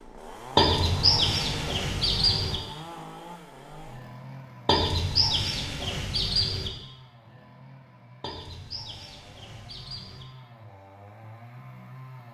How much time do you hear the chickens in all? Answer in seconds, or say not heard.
6 s.